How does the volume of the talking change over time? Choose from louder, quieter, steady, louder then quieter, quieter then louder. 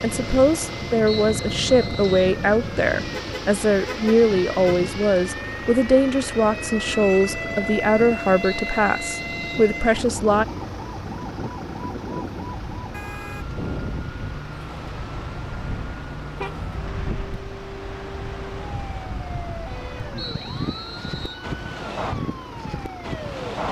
steady.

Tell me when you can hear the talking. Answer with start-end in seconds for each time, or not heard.
0.0-10.4.